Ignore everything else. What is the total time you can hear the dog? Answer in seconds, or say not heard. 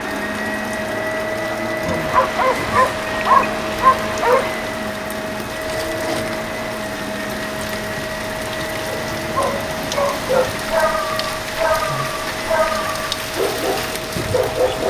9 s.